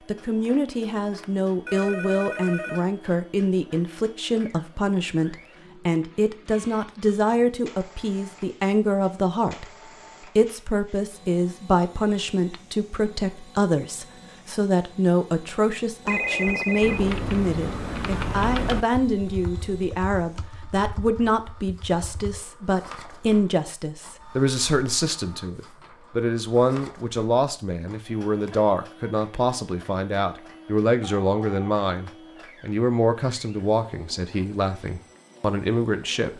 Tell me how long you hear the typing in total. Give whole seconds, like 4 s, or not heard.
6 s.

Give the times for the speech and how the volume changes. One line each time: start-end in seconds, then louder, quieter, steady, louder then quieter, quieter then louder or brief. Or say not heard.
0.1-36.3 steady.